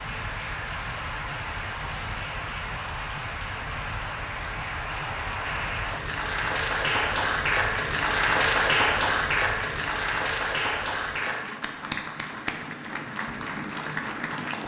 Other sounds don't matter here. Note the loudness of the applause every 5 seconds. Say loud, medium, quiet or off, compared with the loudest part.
medium, loud, medium.